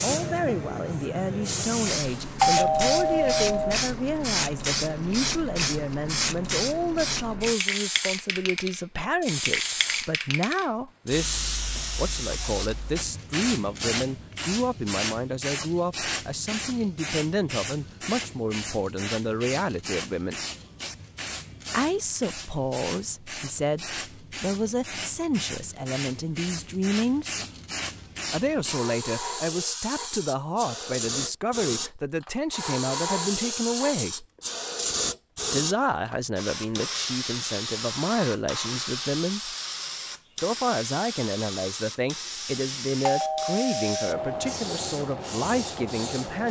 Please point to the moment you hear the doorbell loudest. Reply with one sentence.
The volume of the doorbell peaks at 3 seconds.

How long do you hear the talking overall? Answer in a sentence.
You can hear the talking for 42 seconds altogether.